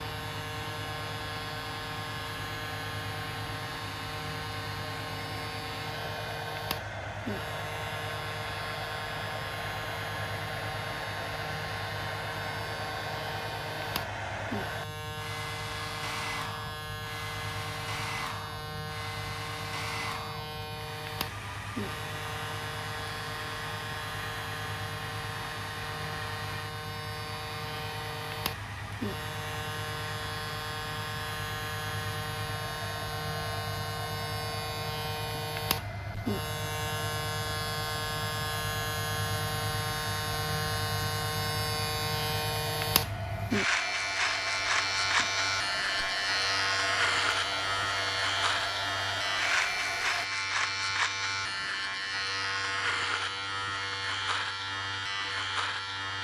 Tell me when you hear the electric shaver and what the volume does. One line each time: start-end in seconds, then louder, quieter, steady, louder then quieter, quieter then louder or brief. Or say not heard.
0.0-56.1 louder.